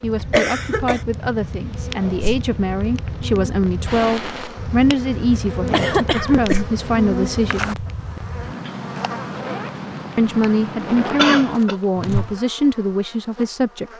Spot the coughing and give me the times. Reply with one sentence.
The coughing can be heard from 0.3 to 1.0 s, from 5.7 to 6.6 s and from 11.2 to 11.8 s.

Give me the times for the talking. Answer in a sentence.
The talking can be heard from 0.0 to 7.8 s and from 10.2 to 13.9 s.